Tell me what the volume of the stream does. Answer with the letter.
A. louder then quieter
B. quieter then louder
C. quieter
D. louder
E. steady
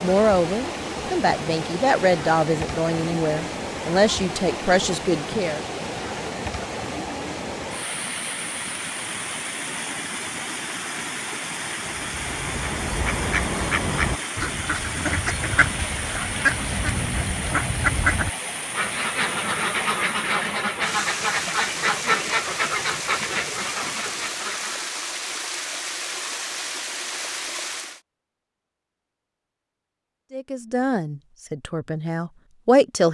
E.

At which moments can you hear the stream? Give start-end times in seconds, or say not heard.
0.0-28.0.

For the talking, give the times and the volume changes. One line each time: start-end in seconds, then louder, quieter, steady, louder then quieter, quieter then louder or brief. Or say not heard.
0.0-5.6 steady
30.3-33.1 brief.